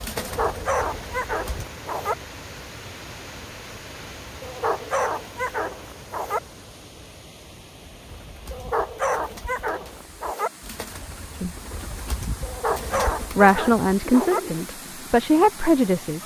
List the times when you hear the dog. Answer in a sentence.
You can hear the dog from 0.1 to 2.1 s, from 4.4 to 6.4 s, from 8.5 to 10.5 s and from 12.4 to 14.4 s.